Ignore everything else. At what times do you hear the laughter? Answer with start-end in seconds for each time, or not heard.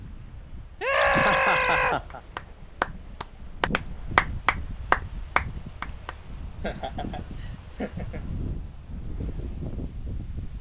1.1-2.2, 6.6-8.3.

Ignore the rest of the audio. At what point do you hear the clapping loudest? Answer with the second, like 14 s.
4 s.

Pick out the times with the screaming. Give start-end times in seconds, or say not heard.
0.8-2.0.